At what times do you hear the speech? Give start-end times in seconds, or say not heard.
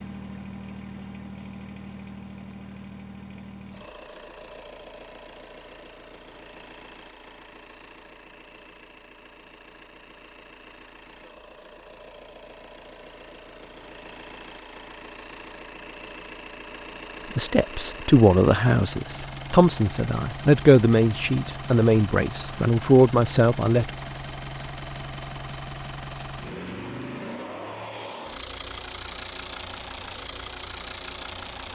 17.4-23.9.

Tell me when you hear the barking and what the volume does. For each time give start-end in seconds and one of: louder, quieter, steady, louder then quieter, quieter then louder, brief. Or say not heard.
not heard.